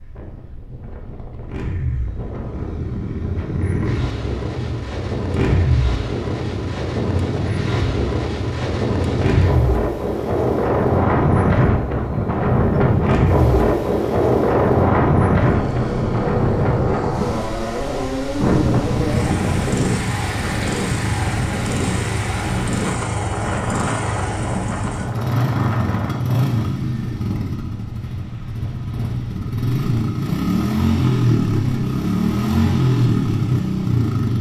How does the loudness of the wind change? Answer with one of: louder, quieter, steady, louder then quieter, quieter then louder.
louder then quieter.